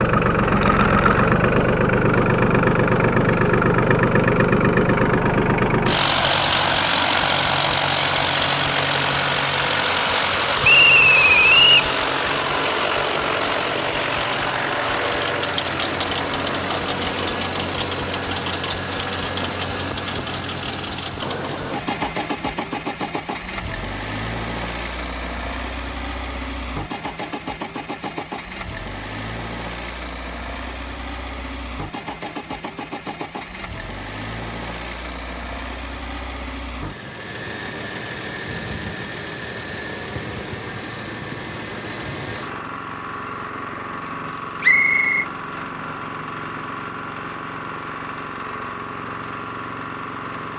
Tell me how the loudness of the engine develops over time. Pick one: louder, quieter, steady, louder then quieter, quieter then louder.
quieter.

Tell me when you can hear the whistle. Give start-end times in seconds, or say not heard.
10.6-11.8, 44.6-45.2.